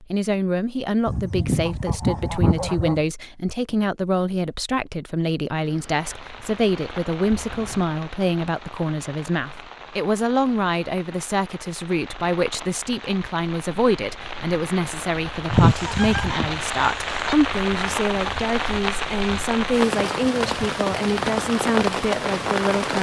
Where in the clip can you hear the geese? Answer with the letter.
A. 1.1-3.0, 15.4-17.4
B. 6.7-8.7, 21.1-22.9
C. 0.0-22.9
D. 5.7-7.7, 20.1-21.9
A.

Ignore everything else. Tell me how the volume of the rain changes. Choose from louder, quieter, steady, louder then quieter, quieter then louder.
louder.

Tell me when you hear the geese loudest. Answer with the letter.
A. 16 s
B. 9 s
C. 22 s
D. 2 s
A.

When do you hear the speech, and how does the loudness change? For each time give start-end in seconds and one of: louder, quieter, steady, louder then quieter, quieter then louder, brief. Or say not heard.
0.0-22.9 steady.